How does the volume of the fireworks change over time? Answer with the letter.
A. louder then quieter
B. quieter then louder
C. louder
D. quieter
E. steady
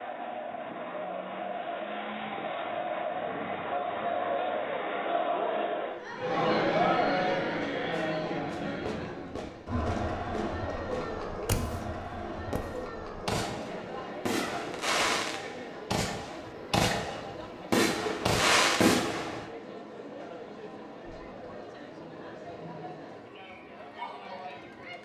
C.